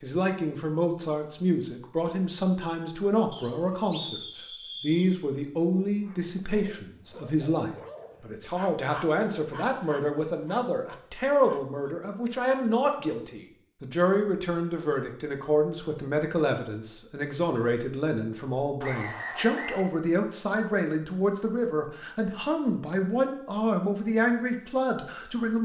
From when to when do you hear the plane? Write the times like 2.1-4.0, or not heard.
not heard.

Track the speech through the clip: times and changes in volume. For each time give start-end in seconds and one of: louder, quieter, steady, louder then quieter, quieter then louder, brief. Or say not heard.
0.0-25.6 steady.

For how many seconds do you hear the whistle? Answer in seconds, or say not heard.
3 s.